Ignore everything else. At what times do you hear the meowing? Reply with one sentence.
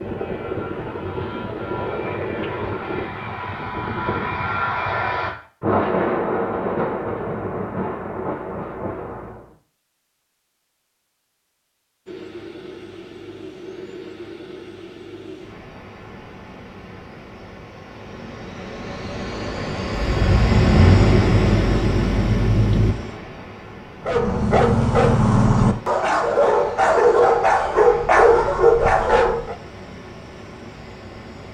You can't hear the meowing here.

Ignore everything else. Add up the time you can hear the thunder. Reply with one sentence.
You can hear the thunder for 7 seconds altogether.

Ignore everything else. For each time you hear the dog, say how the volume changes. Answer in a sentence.
You can hear the dog from 24.0 to 29.6 s, at a steady volume.